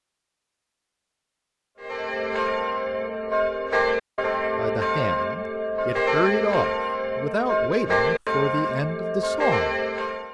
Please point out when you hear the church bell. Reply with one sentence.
The church bell can be heard from 1.8 to 10.2 s.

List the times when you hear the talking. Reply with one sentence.
You can hear the talking from 4.5 to 9.8 s.